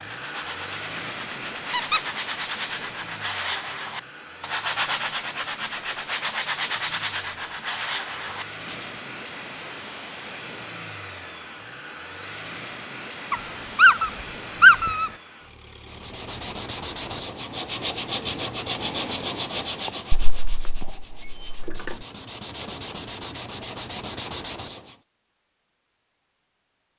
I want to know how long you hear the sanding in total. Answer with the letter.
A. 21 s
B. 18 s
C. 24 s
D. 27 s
B.